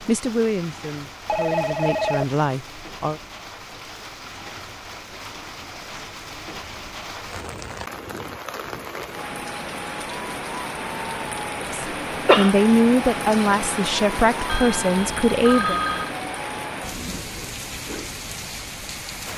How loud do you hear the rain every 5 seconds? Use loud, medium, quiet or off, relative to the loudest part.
medium, medium, loud, loud.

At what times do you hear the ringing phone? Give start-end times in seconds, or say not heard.
1.2-2.4, 14.4-16.1.